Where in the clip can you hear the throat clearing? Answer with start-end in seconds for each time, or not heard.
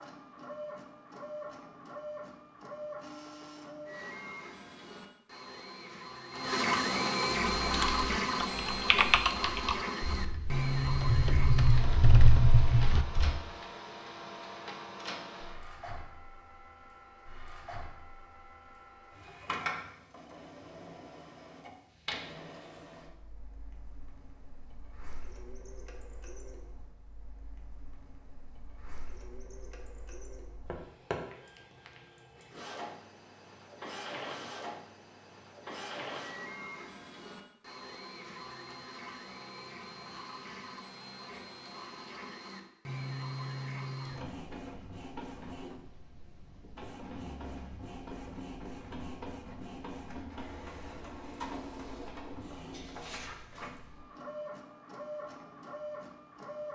not heard.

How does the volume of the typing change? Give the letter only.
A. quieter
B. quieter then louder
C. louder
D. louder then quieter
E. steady
B.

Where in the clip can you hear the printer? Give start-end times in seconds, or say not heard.
0.0-56.7.